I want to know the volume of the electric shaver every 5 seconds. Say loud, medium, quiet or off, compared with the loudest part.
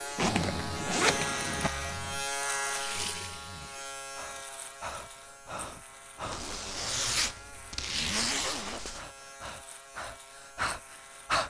loud, quiet, quiet.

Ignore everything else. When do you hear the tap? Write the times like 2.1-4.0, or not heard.
2.4-3.9.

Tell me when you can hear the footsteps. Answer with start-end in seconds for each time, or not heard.
not heard.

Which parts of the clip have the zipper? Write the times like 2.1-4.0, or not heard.
0.1-1.7, 6.3-9.1.